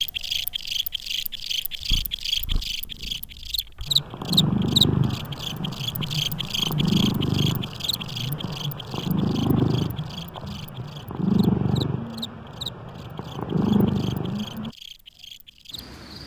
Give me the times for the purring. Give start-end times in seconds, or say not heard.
1.9-14.7.